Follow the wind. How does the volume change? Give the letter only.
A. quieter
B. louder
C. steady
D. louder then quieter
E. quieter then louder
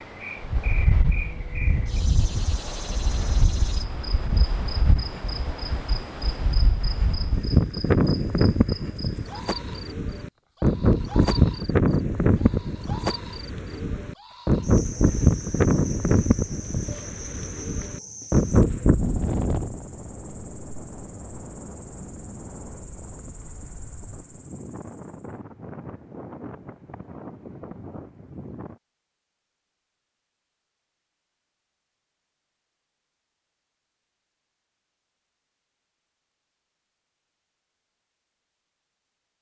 D.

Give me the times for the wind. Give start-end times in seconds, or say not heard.
0.0-28.8.